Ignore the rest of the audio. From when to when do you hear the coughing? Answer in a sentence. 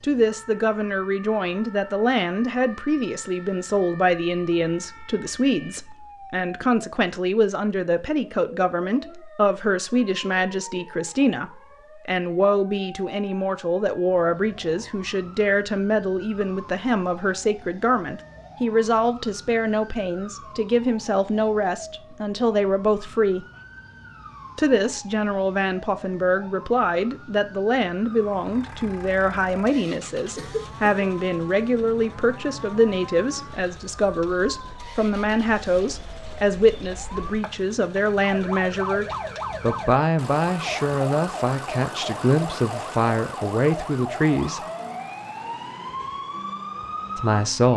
You can hear the coughing from 30.4 to 31.1 s.